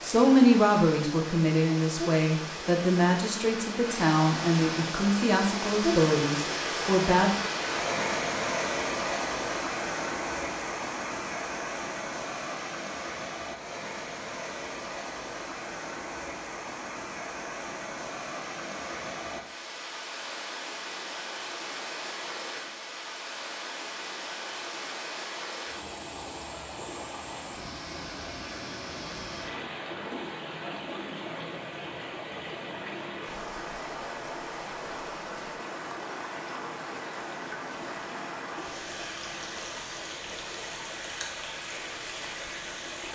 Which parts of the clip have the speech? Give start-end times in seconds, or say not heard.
0.0-7.3.